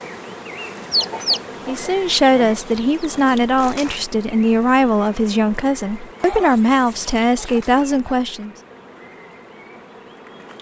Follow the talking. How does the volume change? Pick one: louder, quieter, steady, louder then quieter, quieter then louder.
steady.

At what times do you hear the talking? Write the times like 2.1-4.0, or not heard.
1.6-8.5.